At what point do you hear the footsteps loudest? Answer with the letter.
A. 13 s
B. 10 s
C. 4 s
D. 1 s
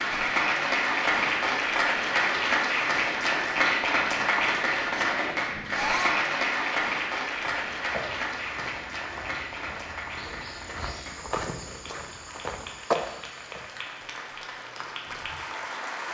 A.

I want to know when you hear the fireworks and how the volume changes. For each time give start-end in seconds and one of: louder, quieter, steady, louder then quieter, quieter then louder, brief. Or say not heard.
not heard.